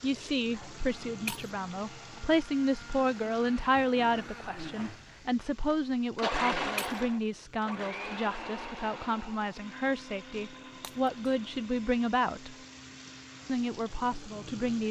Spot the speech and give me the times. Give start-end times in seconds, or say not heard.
0.0-12.6, 13.4-14.8.